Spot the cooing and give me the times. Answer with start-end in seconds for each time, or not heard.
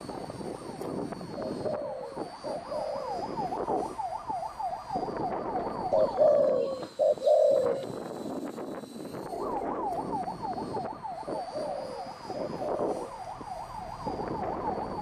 1.4-3.3, 5.9-7.8, 11.2-13.2.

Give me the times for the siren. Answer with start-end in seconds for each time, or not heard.
0.0-6.3, 9.2-14.9.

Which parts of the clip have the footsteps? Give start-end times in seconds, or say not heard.
not heard.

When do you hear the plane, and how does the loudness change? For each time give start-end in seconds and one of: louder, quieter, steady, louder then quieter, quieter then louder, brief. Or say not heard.
0.0-14.9 steady.